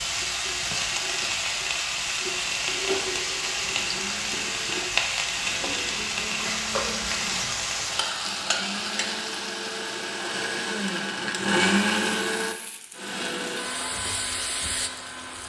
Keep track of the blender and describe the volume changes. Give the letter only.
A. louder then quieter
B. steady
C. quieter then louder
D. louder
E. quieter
A.